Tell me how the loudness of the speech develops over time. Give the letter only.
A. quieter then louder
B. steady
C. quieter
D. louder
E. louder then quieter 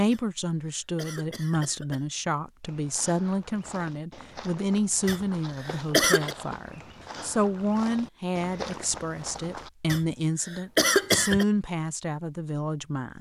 B.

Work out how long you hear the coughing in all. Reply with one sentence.
You can hear the coughing for 5 seconds altogether.